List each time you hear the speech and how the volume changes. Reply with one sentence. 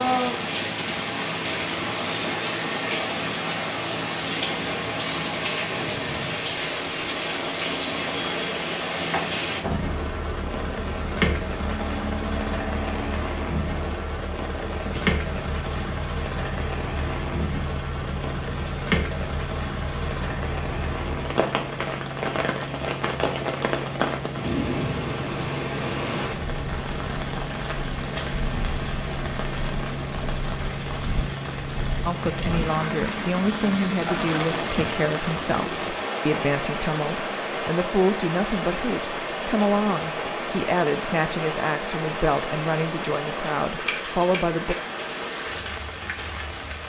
The speech can be heard from 32.0 to 44.8 s, at a steady volume.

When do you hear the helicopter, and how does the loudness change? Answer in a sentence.
You can hear the helicopter from 0.0 to 36.0 s, at a steady volume.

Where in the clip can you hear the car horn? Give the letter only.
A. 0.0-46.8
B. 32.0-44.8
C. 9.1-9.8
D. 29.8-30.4
C.